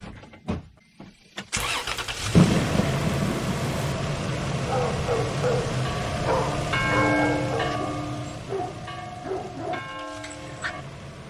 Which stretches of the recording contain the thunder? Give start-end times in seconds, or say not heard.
1.6-4.0.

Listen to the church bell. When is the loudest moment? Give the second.
7 s.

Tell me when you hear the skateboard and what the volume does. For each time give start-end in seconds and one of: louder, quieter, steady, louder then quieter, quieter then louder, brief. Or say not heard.
not heard.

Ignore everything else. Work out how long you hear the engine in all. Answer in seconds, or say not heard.
11 s.